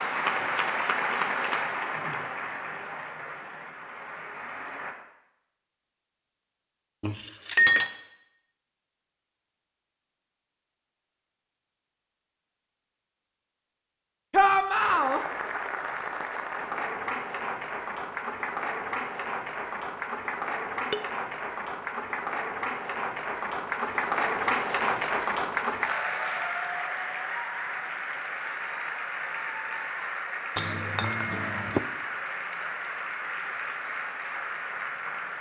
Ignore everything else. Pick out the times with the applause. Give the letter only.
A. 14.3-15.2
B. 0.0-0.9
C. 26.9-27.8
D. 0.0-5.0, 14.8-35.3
D.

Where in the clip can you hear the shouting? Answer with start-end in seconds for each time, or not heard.
14.3-15.2.